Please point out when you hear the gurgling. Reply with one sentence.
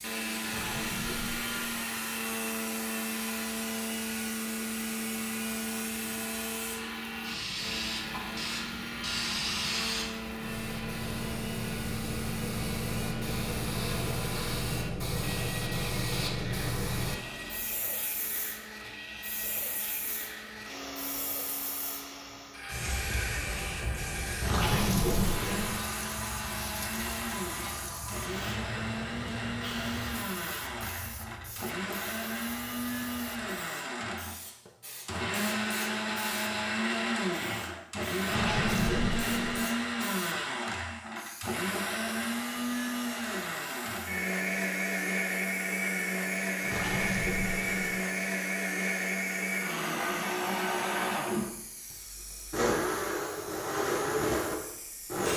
You can hear the gurgling from 0.4 to 1.9 s, from 24.4 to 25.8 s, from 38.2 to 39.6 s and from 46.6 to 48.0 s.